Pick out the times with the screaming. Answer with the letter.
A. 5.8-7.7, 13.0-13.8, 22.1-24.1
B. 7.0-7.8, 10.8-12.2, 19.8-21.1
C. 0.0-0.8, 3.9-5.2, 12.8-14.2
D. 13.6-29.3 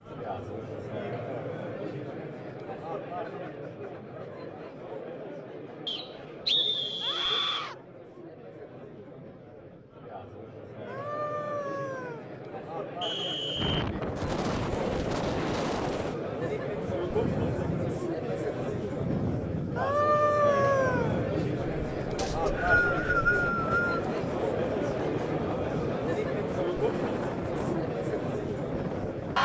B.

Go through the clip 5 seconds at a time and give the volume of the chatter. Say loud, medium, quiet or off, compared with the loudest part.
medium, quiet, medium, loud, loud, loud.